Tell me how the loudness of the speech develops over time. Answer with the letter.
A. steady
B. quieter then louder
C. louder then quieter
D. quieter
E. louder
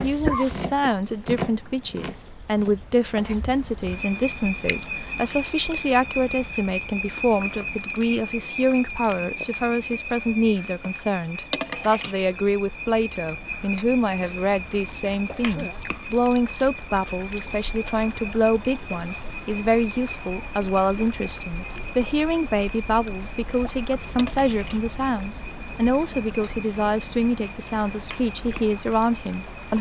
A.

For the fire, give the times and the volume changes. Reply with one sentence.
You can't hear the fire here.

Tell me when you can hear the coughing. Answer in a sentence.
You can hear the coughing from 0.2 to 0.9 s and from 15.2 to 15.8 s.